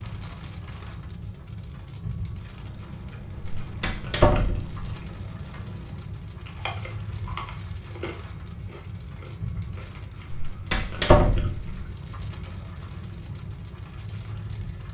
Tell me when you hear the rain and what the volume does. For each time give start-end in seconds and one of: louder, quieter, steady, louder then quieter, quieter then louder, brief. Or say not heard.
0.0-14.8 steady.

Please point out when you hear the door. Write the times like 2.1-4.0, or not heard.
3.6-4.8, 10.3-11.8.